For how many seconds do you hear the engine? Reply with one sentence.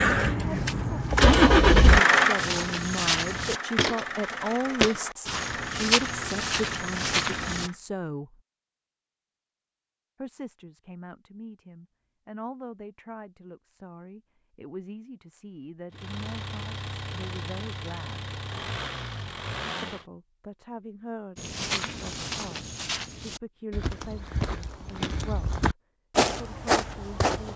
The engine can be heard for 12 seconds in total.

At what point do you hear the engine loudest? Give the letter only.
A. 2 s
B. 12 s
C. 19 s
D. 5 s
A.